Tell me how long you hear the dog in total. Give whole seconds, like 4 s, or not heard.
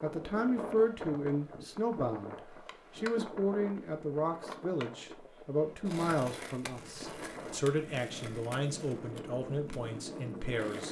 not heard.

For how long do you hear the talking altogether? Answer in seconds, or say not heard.
11 s.